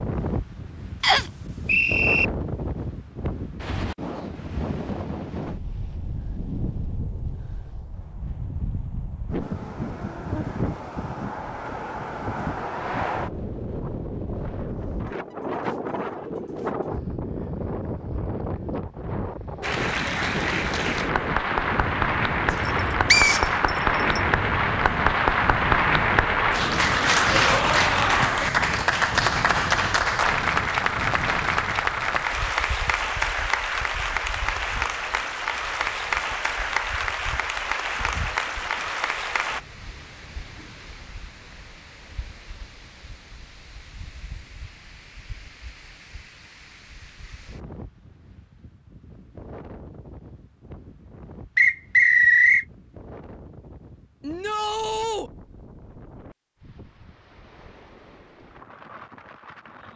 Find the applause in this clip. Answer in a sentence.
The applause can be heard from 19.6 to 39.6 s.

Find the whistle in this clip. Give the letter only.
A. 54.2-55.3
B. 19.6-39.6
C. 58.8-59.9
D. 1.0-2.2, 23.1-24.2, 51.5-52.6
D.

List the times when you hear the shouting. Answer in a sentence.
You can hear the shouting from 54.2 to 55.3 s.